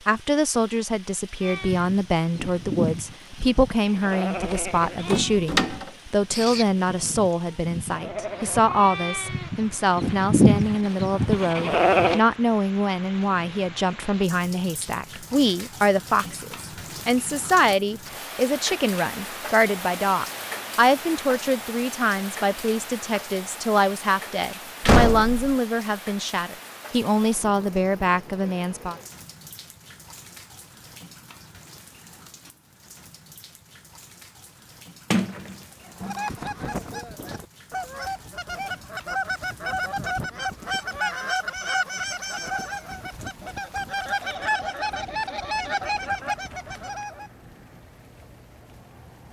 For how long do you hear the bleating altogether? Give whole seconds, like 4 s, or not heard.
11 s.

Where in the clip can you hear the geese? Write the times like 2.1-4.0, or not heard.
35.9-47.3.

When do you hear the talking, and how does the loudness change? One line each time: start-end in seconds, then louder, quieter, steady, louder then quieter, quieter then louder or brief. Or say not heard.
0.1-28.9 steady.